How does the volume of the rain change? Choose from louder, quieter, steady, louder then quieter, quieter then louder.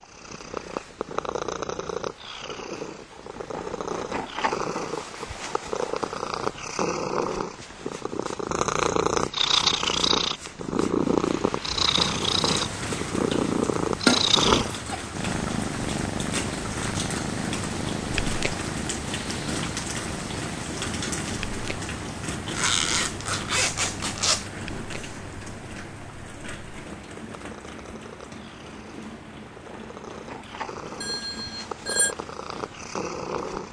quieter.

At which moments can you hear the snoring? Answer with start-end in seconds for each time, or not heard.
not heard.